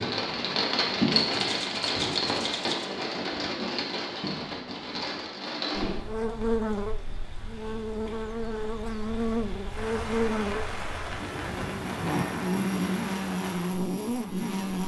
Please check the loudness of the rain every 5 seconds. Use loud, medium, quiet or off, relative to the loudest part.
loud, medium, medium.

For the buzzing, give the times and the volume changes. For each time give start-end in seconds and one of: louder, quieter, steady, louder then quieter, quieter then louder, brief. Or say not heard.
5.7-14.8 steady.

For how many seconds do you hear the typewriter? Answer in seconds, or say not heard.
2 s.